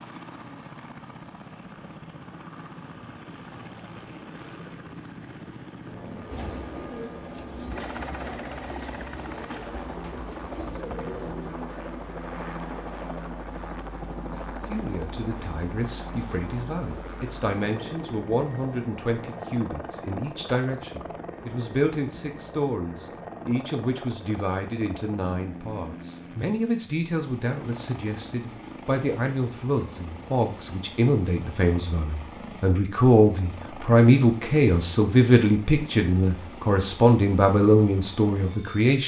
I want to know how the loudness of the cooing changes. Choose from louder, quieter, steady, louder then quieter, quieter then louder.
steady.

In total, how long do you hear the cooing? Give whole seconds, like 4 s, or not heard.
5 s.